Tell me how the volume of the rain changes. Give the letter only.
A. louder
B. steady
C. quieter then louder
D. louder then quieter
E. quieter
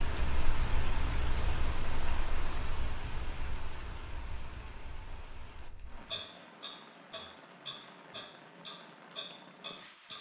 E.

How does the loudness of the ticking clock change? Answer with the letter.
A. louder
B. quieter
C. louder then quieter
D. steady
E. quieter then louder
E.